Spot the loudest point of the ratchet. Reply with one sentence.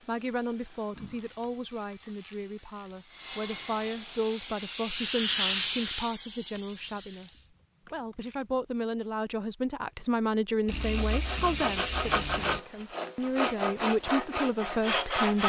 The volume of the ratchet peaks at 12 seconds.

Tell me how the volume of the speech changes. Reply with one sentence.
The loudness of the speech goes up.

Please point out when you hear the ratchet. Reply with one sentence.
The ratchet can be heard from 0.9 to 3.0 s, from 6.5 to 8.5 s and from 10.7 to 12.6 s.